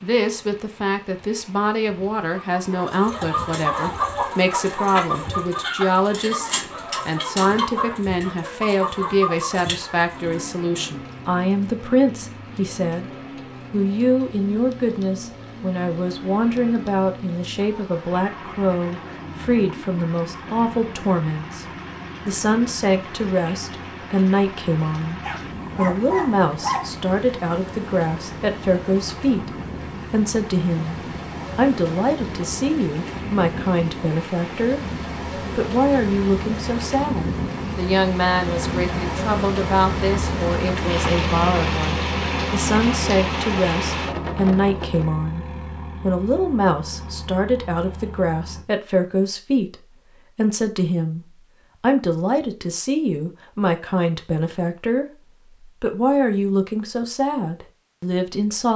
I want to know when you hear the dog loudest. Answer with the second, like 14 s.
27 s.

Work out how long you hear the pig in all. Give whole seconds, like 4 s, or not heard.
not heard.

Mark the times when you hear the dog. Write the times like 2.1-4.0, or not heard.
25.2-27.0.